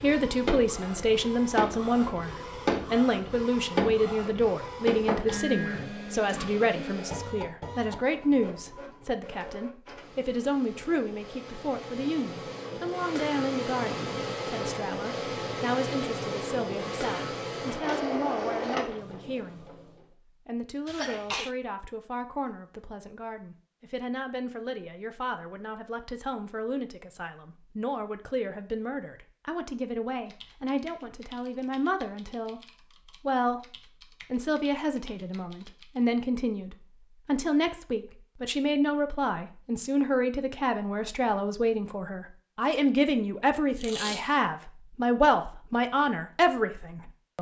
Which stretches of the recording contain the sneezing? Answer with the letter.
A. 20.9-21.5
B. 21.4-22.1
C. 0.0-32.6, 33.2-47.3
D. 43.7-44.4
A.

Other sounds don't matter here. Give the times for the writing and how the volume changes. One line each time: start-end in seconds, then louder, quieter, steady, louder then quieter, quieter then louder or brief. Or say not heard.
not heard.